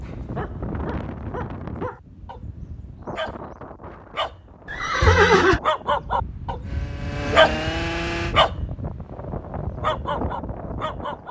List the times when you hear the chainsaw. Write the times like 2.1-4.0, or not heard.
6.6-8.3.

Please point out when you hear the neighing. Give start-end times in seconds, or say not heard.
4.7-5.6.